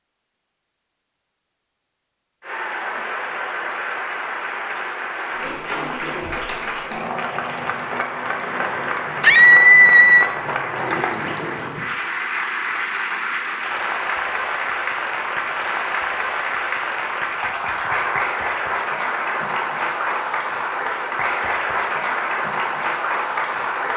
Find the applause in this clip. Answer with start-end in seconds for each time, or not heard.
2.4-23.9.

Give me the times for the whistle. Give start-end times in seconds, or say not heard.
not heard.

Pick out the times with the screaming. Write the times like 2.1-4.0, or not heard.
9.2-10.3.